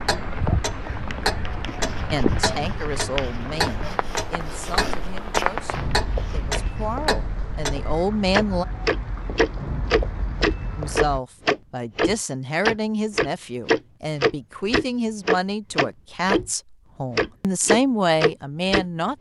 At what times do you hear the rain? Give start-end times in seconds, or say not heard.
0.0-11.2.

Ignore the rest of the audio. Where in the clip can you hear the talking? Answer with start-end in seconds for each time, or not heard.
2.1-8.7, 10.8-19.1.